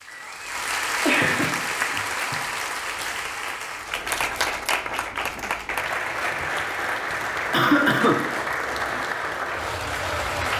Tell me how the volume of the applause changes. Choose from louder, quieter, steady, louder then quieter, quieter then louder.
steady.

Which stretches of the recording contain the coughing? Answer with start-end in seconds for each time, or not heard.
1.0-2.4, 7.5-8.2.